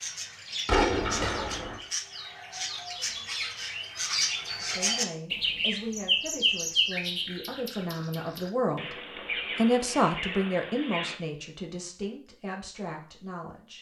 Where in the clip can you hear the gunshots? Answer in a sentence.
The gunshots can be heard from 0.7 to 1.8 s.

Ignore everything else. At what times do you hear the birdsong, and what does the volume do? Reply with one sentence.
The birdsong can be heard from 0.0 to 11.2 s, getting louder then quieter.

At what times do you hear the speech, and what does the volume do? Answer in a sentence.
You can hear the speech from 4.6 to 13.7 s, getting louder then quieter.